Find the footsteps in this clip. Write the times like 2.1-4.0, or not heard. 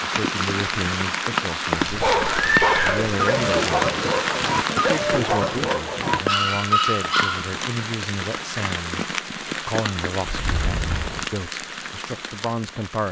not heard.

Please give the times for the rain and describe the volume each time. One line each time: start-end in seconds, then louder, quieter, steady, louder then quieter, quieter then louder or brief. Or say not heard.
0.0-13.0 quieter.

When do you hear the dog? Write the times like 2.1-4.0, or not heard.
1.8-7.6.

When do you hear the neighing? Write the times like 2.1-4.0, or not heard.
2.2-3.6.